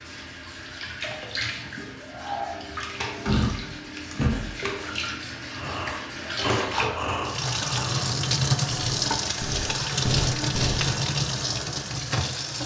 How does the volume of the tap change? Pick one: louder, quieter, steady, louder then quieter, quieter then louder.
louder.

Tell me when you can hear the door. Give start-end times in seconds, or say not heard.
3.2-4.6.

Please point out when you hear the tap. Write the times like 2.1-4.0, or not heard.
0.0-12.6.